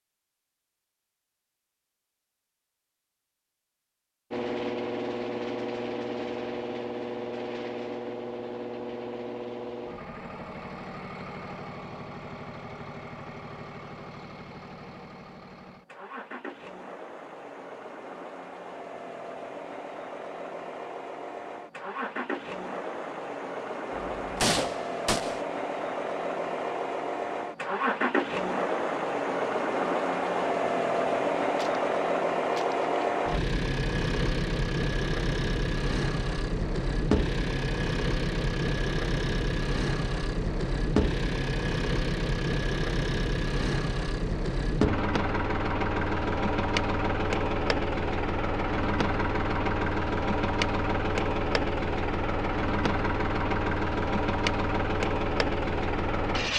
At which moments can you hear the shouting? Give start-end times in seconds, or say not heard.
not heard.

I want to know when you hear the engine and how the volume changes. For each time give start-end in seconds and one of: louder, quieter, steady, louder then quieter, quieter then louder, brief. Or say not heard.
4.3-56.5 louder.